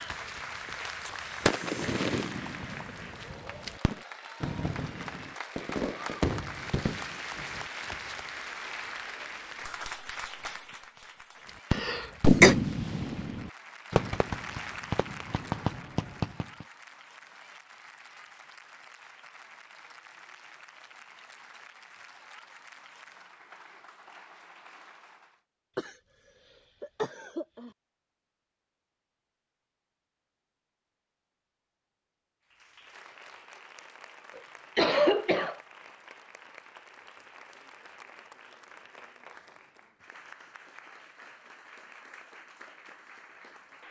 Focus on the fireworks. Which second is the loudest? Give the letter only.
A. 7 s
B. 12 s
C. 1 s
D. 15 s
B.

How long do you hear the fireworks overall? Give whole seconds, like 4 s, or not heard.
13 s.